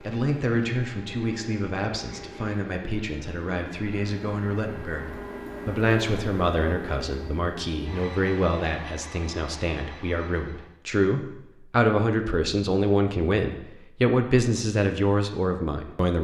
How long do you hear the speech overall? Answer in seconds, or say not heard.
16 s.